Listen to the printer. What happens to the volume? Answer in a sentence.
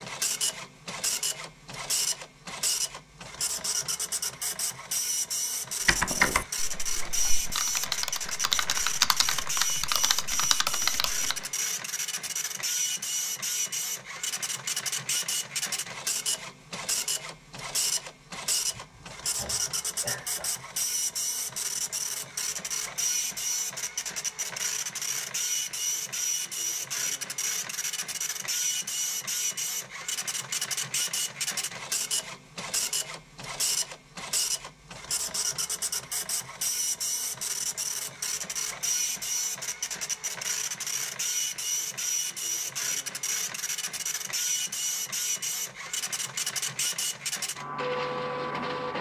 The loudness of the printer stays about the same.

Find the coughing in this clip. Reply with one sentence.
You can hear the coughing from 18.7 to 20.6 s.